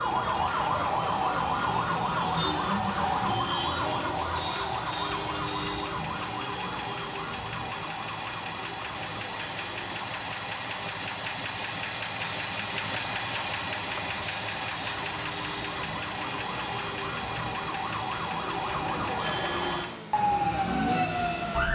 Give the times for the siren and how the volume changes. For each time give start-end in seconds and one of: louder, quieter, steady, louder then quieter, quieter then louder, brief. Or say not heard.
0.0-21.7 quieter then louder.